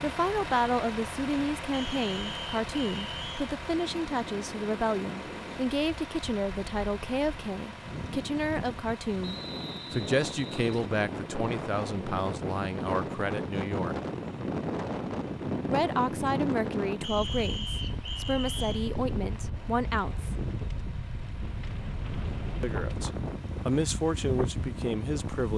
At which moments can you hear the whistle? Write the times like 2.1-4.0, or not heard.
1.7-3.5, 9.2-10.9, 17.0-18.9.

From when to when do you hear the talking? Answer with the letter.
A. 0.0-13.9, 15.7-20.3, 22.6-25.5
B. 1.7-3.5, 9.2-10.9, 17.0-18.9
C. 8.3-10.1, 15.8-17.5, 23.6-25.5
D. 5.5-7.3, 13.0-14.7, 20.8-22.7
A.